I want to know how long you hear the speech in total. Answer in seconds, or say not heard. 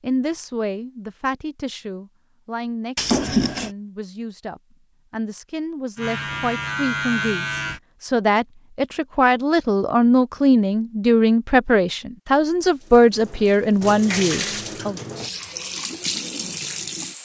15 s.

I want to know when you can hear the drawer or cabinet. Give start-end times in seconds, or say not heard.
3.0-3.7.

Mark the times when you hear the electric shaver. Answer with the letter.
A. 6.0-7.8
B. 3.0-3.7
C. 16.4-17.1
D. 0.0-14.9
A.